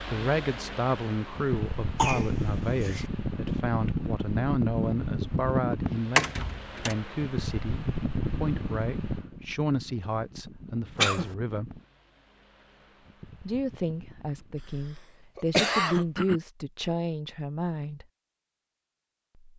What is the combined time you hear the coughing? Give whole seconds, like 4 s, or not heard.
3 s.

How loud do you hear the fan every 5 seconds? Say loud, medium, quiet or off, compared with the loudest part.
loud, loud, quiet, off.